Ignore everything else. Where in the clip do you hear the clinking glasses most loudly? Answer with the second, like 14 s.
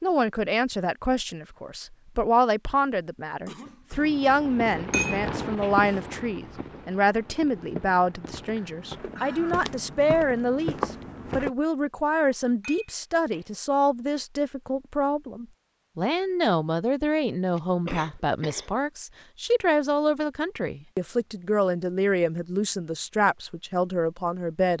5 s.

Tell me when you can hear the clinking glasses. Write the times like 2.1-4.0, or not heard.
4.9-5.8, 12.6-13.4.